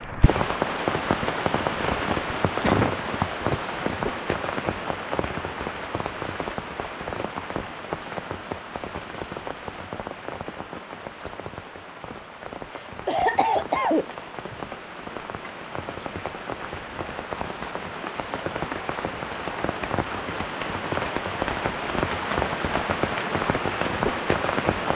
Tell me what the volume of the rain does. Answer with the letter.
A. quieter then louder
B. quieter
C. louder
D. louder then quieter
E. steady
A.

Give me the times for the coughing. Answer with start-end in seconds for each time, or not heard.
1.8-3.0, 12.7-14.1.